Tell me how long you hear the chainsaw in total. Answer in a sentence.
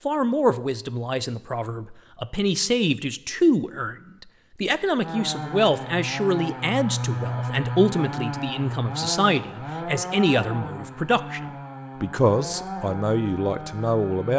The chainsaw can be heard for 9 seconds in total.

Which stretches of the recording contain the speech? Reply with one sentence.
You can hear the speech from 0.1 to 4.0 s, from 4.6 to 11.4 s and from 12.0 to 14.3 s.